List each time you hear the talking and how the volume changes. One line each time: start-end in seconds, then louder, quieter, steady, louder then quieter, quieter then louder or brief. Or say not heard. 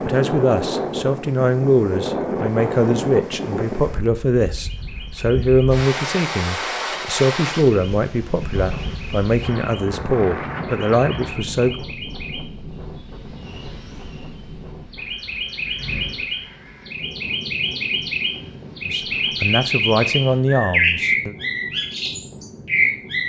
0.0-11.8 steady
18.9-21.4 brief.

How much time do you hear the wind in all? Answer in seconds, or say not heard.
23 s.